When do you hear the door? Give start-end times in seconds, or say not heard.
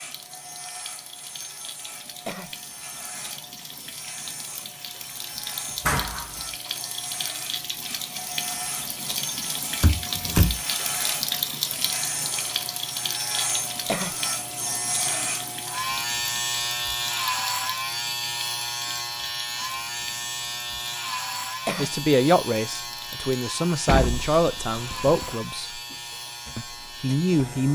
5.8-6.3, 9.8-10.6, 23.9-25.4.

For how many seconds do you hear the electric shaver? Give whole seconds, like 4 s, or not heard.
28 s.